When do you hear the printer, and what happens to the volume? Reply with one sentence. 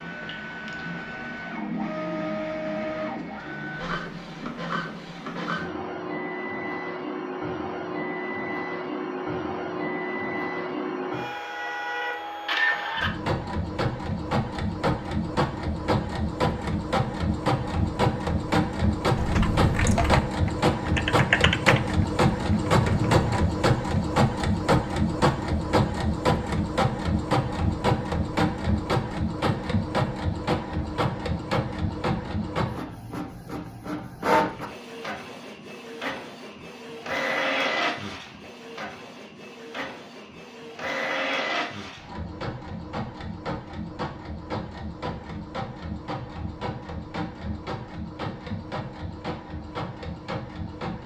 The printer can be heard from 0.0 to 51.0 s, getting louder then quieter.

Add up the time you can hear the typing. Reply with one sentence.
The typing can be heard for 4 seconds in total.